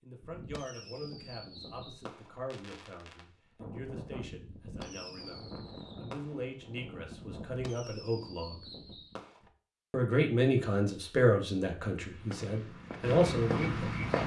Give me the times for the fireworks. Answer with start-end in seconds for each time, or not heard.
0.2-9.5.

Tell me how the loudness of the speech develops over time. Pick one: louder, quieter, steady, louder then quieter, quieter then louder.
louder.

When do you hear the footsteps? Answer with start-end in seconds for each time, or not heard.
11.9-14.2.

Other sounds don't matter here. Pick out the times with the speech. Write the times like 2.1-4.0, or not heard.
0.0-8.6, 9.9-14.1.